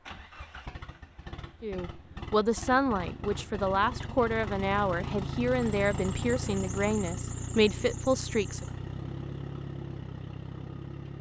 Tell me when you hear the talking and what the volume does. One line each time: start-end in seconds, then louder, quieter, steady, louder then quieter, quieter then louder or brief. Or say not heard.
1.6-8.7 steady.